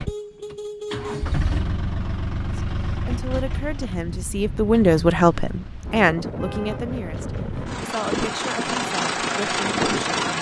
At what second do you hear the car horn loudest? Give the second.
1 s.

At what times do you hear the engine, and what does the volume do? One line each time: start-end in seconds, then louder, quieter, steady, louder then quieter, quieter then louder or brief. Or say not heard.
0.0-10.3 quieter then louder.